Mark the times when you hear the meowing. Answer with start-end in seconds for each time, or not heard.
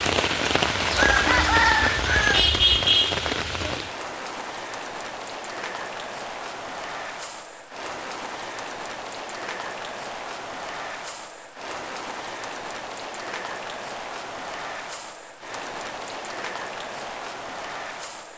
not heard.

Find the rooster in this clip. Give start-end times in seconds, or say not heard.
0.9-2.9.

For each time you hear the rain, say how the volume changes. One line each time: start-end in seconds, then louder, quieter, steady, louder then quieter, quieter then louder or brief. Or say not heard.
0.0-18.3 quieter.